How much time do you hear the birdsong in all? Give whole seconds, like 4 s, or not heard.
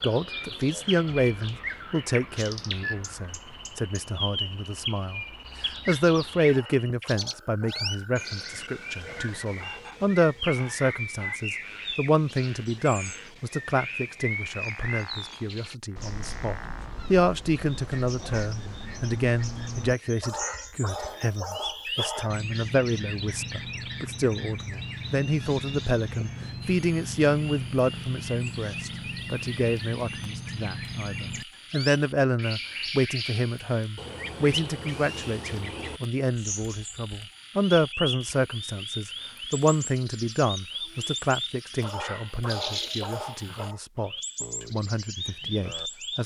46 s.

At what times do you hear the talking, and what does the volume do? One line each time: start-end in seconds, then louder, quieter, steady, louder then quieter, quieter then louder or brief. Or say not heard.
0.0-46.2 steady.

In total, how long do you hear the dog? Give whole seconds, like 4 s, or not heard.
6 s.